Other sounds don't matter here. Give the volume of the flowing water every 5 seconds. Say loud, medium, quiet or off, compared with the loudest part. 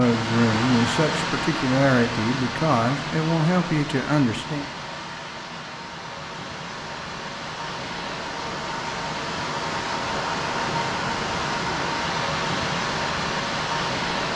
loud, medium, loud.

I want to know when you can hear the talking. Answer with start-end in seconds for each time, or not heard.
0.0-4.7.